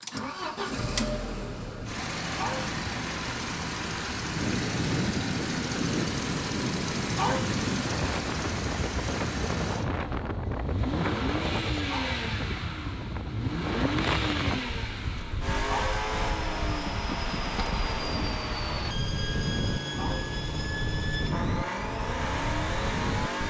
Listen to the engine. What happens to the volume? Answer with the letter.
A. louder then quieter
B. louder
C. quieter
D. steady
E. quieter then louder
D.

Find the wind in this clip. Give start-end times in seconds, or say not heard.
4.2-23.4.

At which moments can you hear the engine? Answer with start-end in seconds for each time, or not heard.
0.0-23.4.